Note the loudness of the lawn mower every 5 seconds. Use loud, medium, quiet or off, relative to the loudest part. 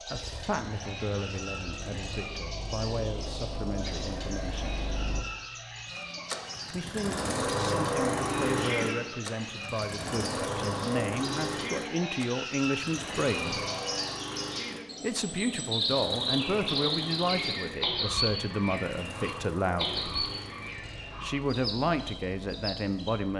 medium, loud, loud, medium, quiet.